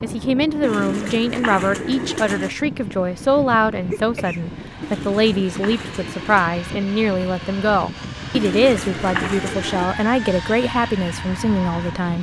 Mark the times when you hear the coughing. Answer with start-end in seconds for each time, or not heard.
3.9-4.5.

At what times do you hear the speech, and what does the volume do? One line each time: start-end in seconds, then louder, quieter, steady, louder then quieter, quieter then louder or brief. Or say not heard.
0.0-12.1 steady.